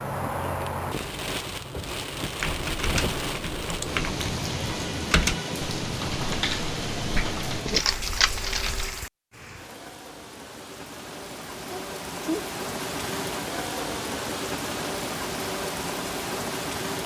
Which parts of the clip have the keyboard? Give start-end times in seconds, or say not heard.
2.4-9.0.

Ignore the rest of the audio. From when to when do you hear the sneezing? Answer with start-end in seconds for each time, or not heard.
11.7-12.4.